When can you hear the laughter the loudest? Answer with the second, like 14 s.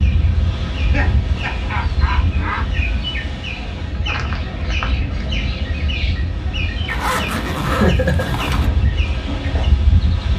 8 s.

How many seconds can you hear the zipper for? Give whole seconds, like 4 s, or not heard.
2 s.